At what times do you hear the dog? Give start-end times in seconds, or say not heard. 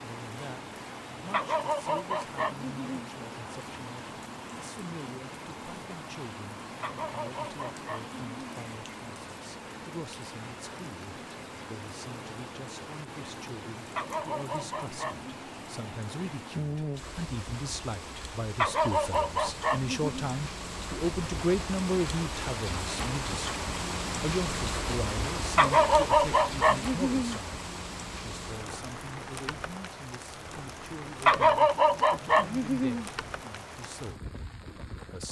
1.3-3.1, 6.8-8.5, 13.9-15.4, 18.6-20.3, 25.6-27.4, 31.2-33.0.